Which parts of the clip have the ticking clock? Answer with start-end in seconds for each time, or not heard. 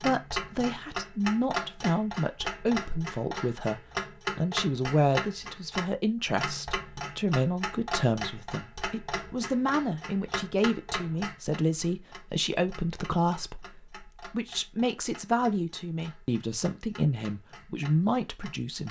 0.0-18.8.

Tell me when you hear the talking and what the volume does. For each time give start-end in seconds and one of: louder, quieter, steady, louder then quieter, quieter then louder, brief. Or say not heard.
0.0-18.8 steady.